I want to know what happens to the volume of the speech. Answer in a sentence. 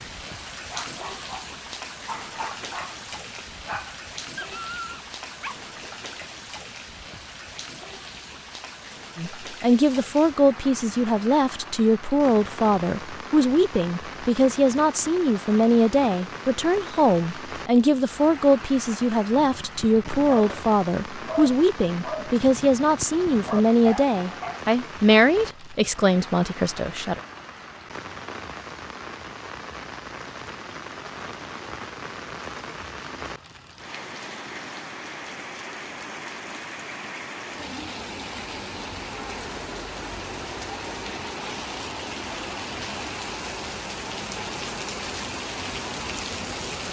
The loudness of the speech stays about the same.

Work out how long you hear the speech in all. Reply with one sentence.
The speech can be heard for 18 seconds in total.